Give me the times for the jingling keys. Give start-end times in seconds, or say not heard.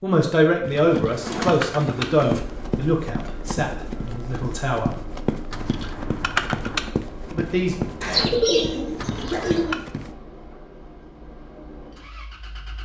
0.8-2.2, 5.5-6.8, 8.9-9.8.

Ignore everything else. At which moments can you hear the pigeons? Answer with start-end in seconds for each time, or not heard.
1.1-2.4, 8.0-9.8.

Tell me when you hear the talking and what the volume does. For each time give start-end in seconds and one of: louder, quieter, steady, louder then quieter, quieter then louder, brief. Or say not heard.
0.0-4.9 quieter
7.3-7.8 brief.